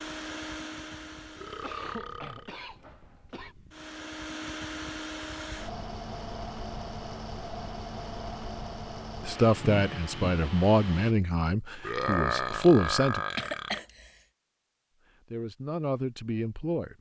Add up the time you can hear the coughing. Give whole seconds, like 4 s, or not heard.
4 s.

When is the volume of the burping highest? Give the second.
12 s.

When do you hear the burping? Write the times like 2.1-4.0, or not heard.
1.4-2.5, 11.8-13.8.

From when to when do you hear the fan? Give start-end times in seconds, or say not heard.
0.0-11.2.